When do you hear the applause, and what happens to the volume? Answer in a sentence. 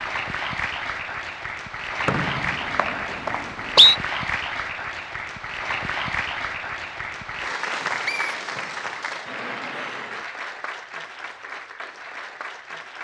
You can hear the applause from 0.0 to 12.9 s, getting quieter.